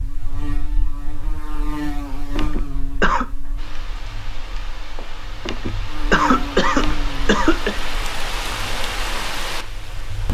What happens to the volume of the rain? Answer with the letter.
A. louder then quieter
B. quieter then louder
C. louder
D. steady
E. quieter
C.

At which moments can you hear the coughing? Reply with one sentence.
You can hear the coughing from 2.4 to 3.2 s and from 5.5 to 7.8 s.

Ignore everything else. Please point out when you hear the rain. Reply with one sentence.
You can hear the rain from 3.5 to 10.2 s.